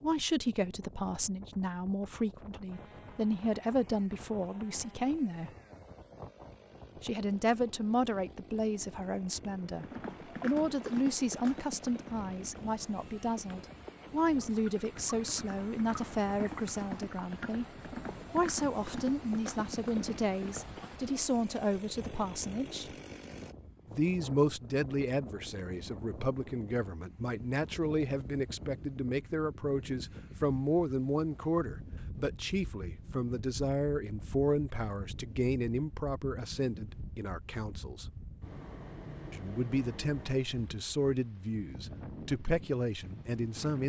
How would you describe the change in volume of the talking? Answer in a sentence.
The volume of the talking stays about the same.